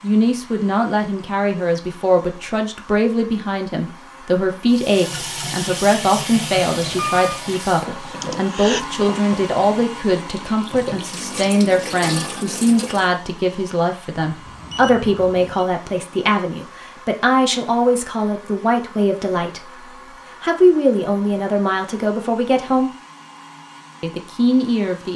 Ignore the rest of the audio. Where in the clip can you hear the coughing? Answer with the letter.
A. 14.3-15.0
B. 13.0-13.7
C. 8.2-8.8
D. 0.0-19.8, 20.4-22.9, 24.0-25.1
C.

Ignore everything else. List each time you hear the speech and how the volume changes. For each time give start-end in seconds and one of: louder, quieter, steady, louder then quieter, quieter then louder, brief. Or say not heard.
0.0-19.8 steady
20.4-22.9 brief
24.0-25.1 brief.